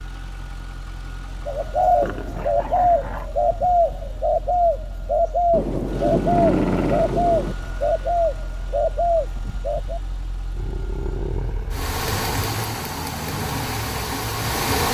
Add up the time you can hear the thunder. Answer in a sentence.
The thunder can be heard for 2 seconds in total.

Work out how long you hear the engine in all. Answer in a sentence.
You can hear the engine for 15 seconds altogether.